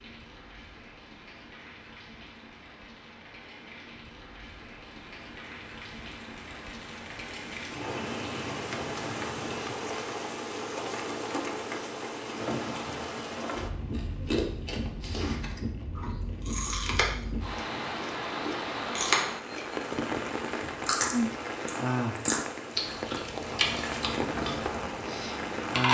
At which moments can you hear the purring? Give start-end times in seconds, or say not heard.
not heard.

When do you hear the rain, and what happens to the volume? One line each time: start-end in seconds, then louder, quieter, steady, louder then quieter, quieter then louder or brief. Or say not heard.
0.0-25.9 louder.